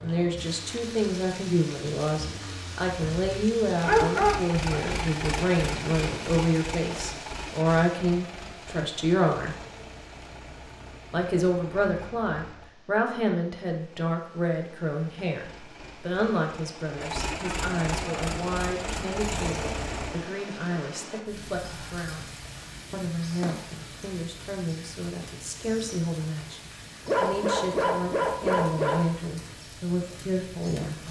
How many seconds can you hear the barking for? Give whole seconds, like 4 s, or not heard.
4 s.